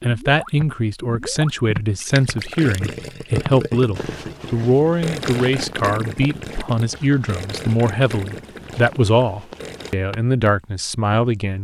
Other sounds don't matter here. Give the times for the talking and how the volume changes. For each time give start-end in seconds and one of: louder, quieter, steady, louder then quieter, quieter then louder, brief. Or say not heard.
0.0-11.5 steady.